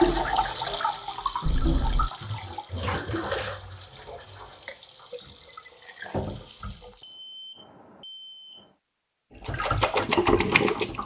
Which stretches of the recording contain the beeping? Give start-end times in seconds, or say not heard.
1.4-2.1, 7.0-8.7.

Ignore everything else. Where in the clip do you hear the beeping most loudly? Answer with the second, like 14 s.
2 s.